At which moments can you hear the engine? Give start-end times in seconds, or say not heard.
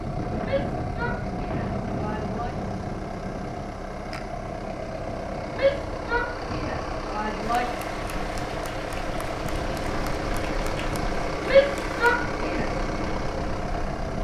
0.0-14.1.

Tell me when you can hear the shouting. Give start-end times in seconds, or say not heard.
0.4-2.5, 5.5-7.7, 11.4-12.7.